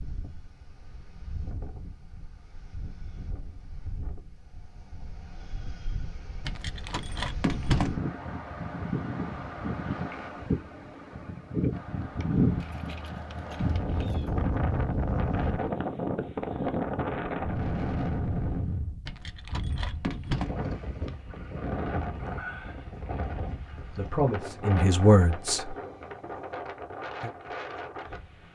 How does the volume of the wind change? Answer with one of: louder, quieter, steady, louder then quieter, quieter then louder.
louder then quieter.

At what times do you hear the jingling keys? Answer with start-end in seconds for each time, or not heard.
6.4-8.0, 12.6-14.3, 19.1-20.5.